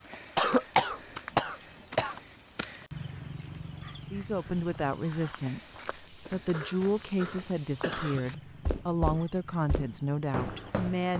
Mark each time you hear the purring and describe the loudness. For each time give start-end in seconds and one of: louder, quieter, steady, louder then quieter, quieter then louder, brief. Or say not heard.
not heard.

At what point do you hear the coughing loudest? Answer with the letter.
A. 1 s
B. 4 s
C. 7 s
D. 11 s
A.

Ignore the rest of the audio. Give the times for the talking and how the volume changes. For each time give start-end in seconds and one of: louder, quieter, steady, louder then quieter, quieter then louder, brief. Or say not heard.
4.1-11.1 steady.